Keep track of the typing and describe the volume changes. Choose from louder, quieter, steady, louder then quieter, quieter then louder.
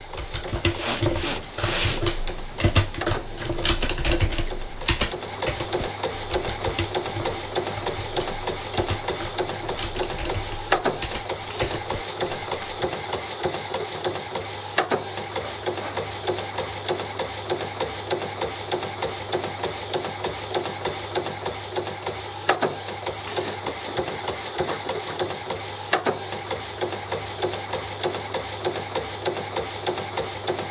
quieter.